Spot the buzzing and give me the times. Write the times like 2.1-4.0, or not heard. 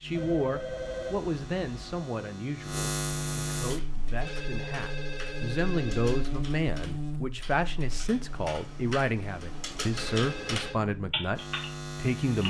0.0-12.4.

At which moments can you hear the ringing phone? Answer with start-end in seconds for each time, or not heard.
0.1-2.0, 4.2-6.2, 9.9-10.8.